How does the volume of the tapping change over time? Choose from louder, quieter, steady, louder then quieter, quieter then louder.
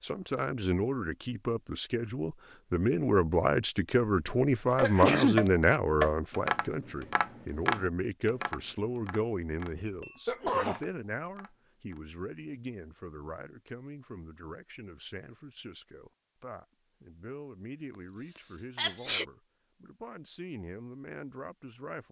quieter.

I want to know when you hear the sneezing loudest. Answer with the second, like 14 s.
5 s.